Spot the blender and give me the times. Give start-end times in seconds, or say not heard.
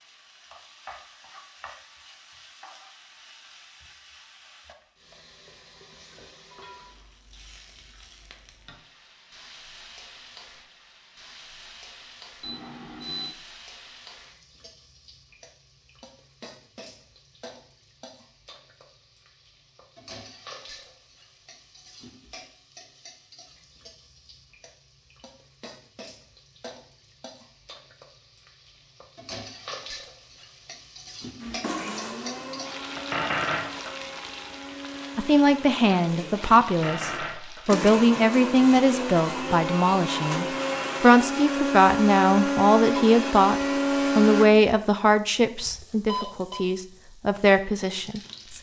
31.4-44.5.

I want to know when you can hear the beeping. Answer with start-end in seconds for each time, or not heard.
12.4-13.3, 45.6-46.7.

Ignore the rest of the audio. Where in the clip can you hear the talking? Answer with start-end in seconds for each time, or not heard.
35.1-48.5.